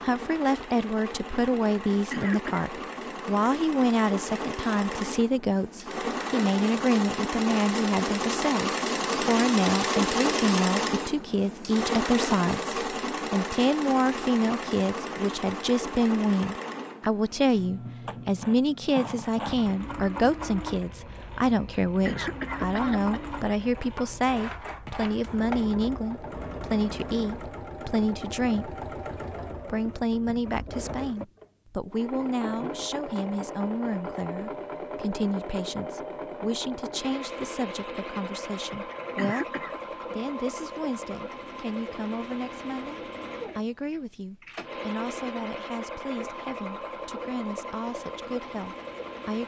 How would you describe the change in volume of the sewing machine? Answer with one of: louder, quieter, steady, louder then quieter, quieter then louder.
quieter.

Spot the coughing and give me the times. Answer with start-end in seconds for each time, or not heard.
1.9-2.7, 21.9-23.3, 38.9-39.8.